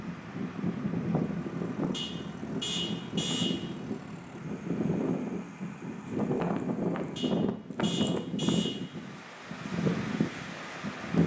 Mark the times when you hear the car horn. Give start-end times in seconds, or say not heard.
1.9-3.6, 7.2-8.8.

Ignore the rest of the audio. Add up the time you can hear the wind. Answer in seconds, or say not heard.
11 s.